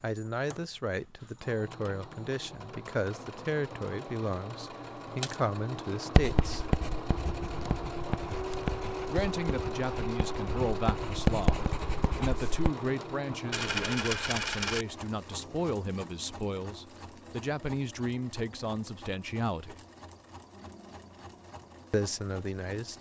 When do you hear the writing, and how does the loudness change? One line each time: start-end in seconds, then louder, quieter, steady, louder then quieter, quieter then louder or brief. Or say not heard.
6.2-12.7 quieter then louder.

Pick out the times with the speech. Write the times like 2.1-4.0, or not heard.
0.0-6.8, 9.1-19.8, 21.9-22.9.